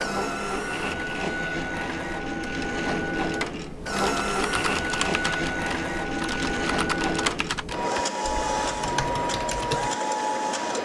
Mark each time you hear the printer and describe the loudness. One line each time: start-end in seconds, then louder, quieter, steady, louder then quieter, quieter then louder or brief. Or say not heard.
0.0-10.8 steady.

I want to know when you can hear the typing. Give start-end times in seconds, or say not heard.
3.6-9.9.